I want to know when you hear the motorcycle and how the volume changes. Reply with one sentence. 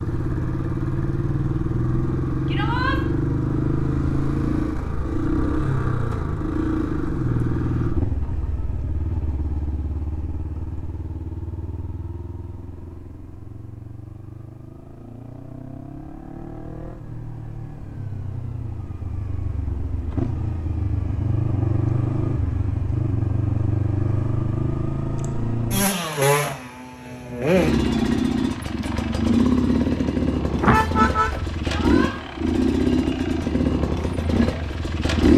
You can hear the motorcycle from 0.0 to 35.3 s, getting quieter then louder.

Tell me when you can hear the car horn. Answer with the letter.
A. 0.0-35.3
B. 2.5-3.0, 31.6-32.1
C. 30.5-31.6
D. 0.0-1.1
C.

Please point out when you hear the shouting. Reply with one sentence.
The shouting can be heard from 2.5 to 3.0 s and from 31.6 to 32.1 s.